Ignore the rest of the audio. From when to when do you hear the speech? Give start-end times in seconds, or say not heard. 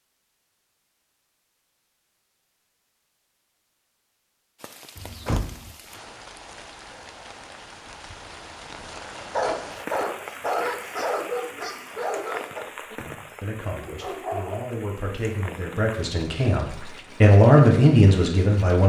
13.4-18.8.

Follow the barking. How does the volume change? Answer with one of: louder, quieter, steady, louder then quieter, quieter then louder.
quieter.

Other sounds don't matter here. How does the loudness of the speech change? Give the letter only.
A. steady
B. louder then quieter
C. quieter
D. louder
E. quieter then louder
D.